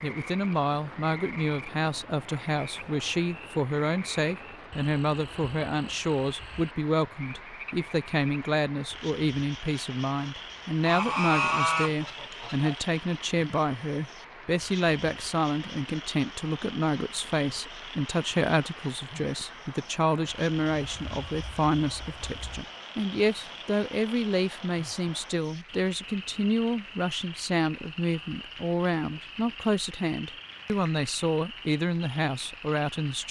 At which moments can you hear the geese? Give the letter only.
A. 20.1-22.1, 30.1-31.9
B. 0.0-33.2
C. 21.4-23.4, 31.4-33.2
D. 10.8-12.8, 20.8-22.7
D.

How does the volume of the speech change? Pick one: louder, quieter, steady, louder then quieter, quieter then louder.
steady.